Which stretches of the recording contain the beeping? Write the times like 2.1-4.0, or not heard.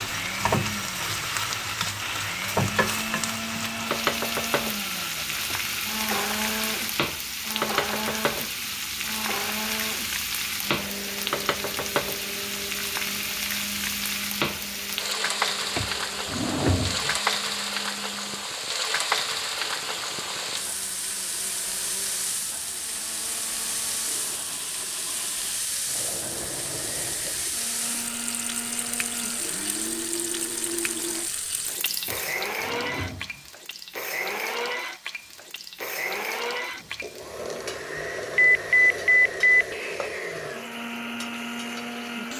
38.4-39.6.